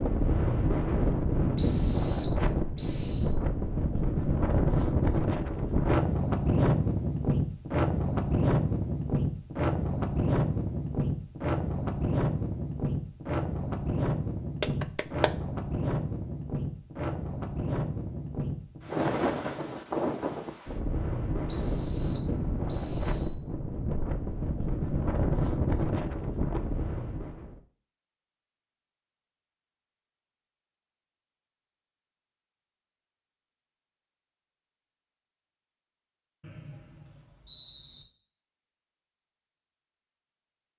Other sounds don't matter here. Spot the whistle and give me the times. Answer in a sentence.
You can hear the whistle from 1.6 to 3.4 s, from 21.4 to 23.4 s and from 36.4 to 38.0 s.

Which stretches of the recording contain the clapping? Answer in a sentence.
The clapping can be heard from 14.6 to 15.3 s.